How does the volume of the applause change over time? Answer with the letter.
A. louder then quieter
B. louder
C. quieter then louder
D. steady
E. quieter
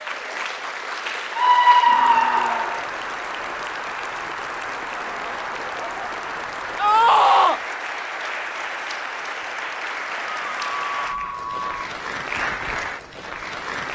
D.